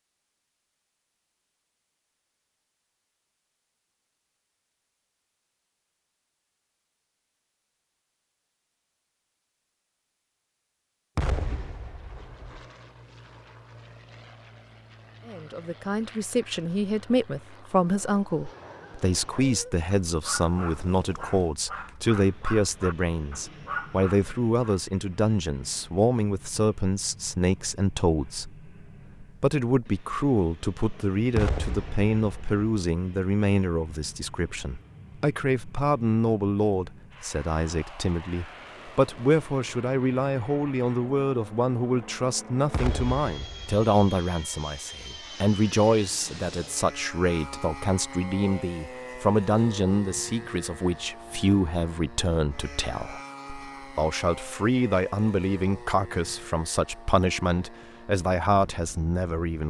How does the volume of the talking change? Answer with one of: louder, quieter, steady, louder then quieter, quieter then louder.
steady.